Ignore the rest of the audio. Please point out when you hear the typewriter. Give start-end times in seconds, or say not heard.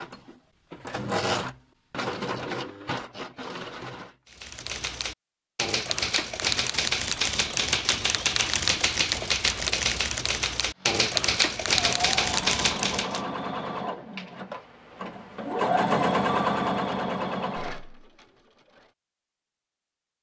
4.2-13.2.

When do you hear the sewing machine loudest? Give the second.
16 s.